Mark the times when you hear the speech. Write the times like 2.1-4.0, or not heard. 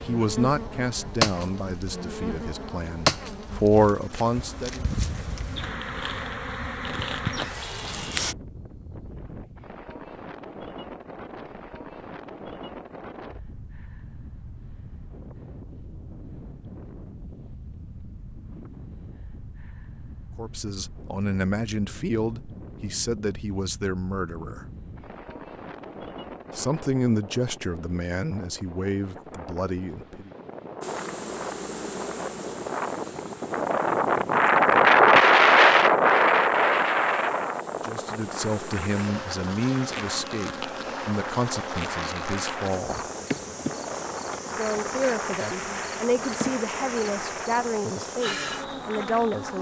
0.0-4.8, 20.4-24.6, 26.5-30.3, 37.8-43.0, 44.5-49.5.